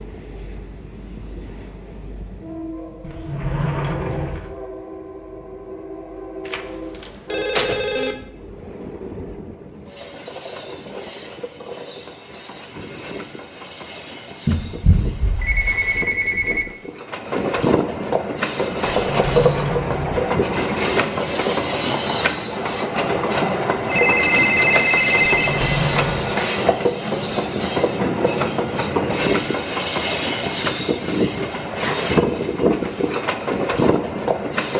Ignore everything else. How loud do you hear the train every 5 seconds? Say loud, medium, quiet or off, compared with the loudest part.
quiet, quiet, quiet, loud, loud, loud, loud.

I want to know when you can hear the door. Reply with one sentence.
You can hear the door from 3.0 to 4.5 s, from 18.9 to 20.2 s and from 25.4 to 26.4 s.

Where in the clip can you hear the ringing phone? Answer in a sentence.
The ringing phone can be heard from 6.5 to 8.2 s, from 14.4 to 16.6 s and from 23.9 to 25.6 s.